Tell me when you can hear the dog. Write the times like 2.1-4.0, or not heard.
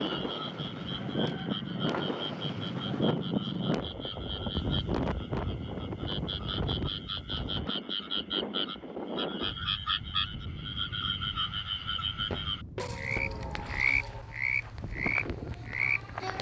not heard.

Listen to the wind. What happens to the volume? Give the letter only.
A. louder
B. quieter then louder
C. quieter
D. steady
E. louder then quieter
C.